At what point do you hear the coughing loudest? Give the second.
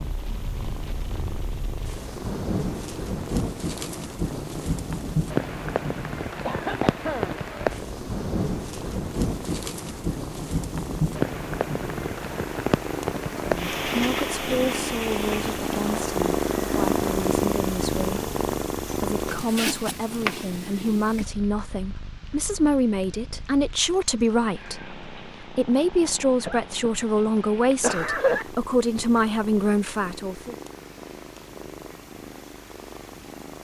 28 s.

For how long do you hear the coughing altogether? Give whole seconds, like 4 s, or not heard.
2 s.